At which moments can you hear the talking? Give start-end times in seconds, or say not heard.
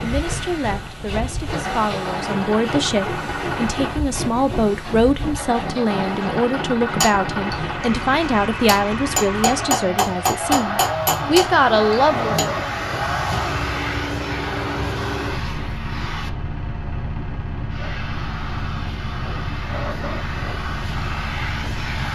0.0-12.6.